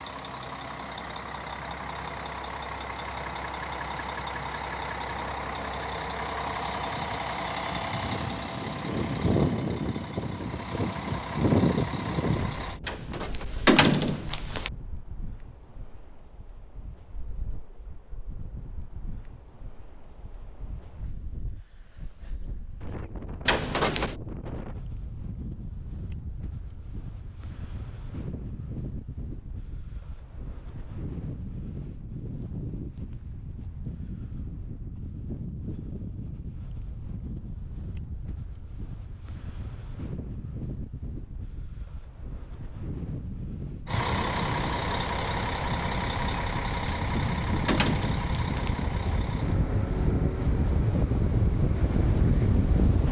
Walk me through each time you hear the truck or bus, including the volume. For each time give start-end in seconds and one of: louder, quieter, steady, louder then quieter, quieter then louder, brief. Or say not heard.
0.0-12.8 louder
43.9-52.9 quieter.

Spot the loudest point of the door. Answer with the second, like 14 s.
14 s.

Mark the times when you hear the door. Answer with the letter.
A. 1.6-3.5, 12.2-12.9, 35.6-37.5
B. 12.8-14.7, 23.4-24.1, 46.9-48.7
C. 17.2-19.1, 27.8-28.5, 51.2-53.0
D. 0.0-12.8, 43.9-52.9
B.